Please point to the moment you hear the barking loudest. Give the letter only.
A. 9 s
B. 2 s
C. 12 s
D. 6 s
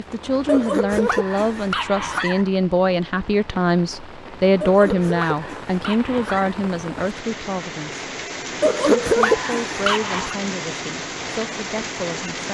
A.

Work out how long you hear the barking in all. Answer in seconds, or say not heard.
6 s.